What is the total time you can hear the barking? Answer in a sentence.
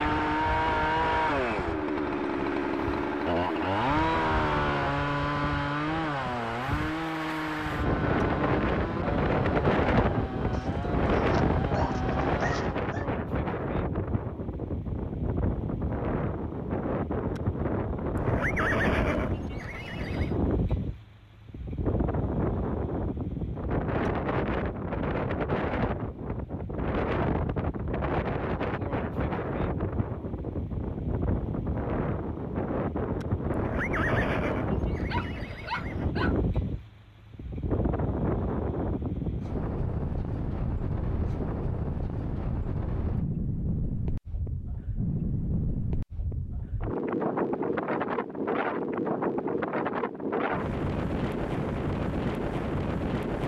You can hear the barking for 4 seconds altogether.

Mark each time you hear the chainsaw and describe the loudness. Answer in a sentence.
You can hear the chainsaw from 0.0 to 12.8 s, getting quieter.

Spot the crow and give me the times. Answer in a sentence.
You can't hear the crow here.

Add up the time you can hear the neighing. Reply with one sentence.
You can hear the neighing for 5 seconds altogether.